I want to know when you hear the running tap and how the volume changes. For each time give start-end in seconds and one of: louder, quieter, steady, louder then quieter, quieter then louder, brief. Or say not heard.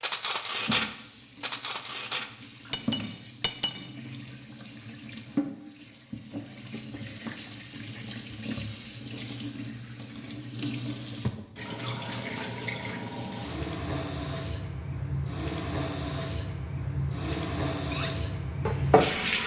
0.1-19.4 louder.